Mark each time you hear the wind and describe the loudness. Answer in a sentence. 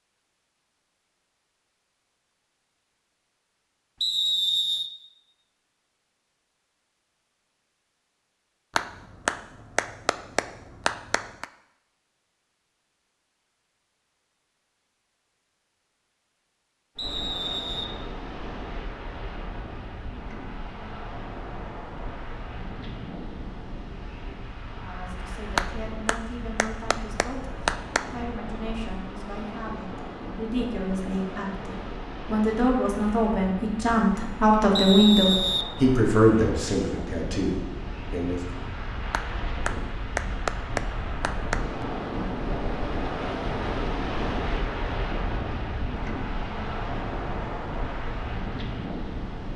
The wind can be heard from 16.9 to 49.5 s, getting louder.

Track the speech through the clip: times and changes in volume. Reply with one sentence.
You can hear the speech from 24.8 to 38.5 s, getting louder.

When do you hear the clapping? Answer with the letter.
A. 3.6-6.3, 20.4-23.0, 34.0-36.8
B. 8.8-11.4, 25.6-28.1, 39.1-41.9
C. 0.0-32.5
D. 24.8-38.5
B.